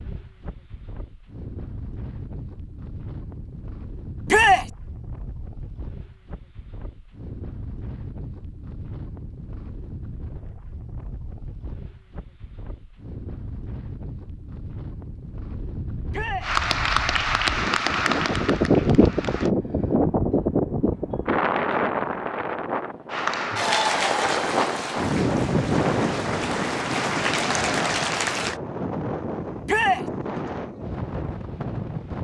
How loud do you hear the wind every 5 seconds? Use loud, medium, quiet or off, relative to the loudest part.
quiet, quiet, quiet, loud, loud, loud, medium.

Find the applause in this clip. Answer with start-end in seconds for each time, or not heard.
16.4-19.5, 23.1-28.6.